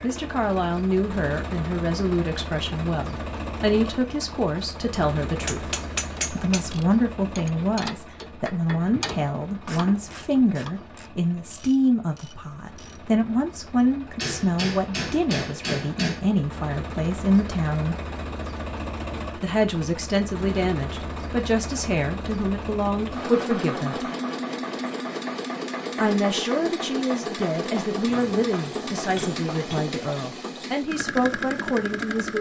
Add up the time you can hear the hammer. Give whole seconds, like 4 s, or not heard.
5 s.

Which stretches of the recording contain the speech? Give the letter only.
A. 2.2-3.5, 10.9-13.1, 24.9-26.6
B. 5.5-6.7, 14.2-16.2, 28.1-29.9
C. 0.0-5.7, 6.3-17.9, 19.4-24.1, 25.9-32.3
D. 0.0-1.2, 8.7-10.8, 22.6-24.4
C.